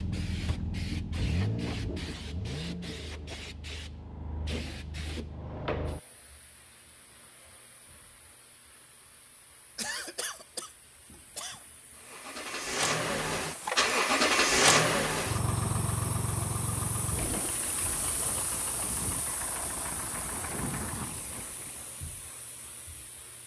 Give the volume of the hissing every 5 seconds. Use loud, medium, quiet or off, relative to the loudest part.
loud, loud, quiet, loud, medium.